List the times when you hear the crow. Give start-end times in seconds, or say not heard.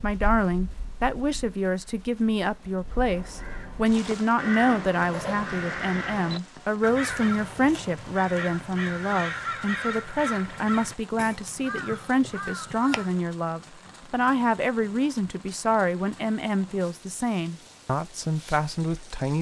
2.9-13.2.